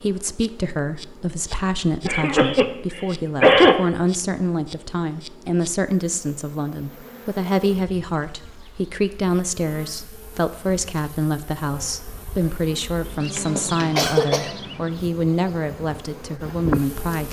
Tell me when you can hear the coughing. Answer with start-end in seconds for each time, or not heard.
2.0-3.8, 13.3-14.5.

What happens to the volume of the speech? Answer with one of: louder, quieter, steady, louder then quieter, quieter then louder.
steady.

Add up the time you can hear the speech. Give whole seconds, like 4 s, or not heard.
17 s.